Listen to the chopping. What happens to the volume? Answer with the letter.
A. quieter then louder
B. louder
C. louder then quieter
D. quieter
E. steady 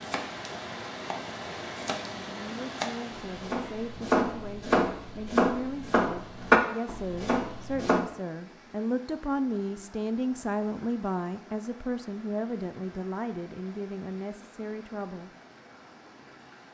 B.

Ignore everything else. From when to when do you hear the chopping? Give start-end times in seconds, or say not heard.
0.0-8.1.